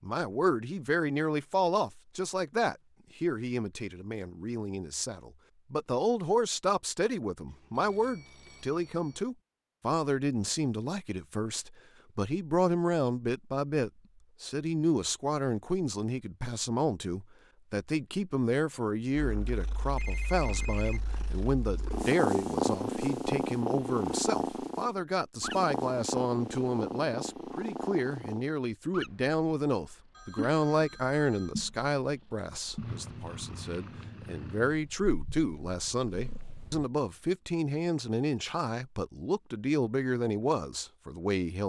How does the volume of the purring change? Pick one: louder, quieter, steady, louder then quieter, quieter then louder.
quieter.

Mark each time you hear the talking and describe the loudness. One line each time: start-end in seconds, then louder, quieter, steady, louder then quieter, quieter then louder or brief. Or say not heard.
0.0-41.6 steady.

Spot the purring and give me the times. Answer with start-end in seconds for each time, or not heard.
19.1-36.9.